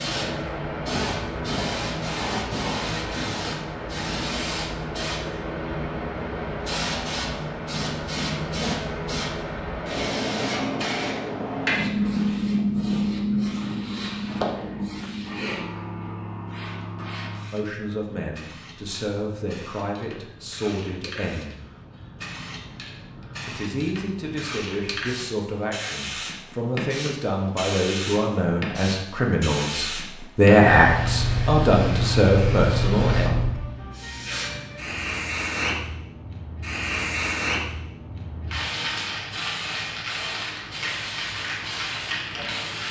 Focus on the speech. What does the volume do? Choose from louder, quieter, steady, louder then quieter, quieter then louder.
louder.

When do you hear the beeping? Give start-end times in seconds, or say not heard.
not heard.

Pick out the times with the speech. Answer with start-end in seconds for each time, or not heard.
17.5-21.6, 23.4-33.4.